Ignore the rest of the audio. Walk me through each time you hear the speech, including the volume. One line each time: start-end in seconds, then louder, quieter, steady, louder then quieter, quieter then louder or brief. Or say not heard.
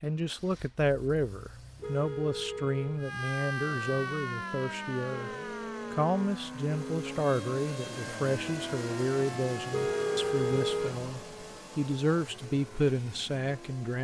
0.0-5.3 quieter
5.9-14.0 steady.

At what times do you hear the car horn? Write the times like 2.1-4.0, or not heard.
1.8-3.0, 5.1-7.2, 9.7-11.1.